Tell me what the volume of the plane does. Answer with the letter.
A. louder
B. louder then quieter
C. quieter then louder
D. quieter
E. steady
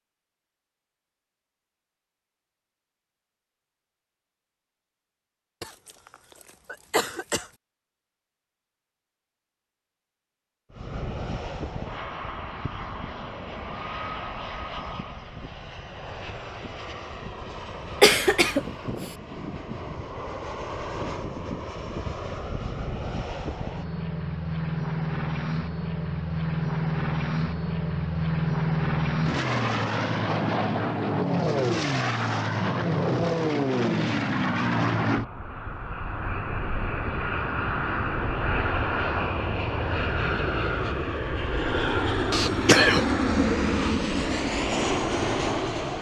A.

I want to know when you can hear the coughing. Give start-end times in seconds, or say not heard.
5.6-7.5, 18.0-19.1, 42.3-43.0.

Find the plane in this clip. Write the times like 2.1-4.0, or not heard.
10.7-45.9.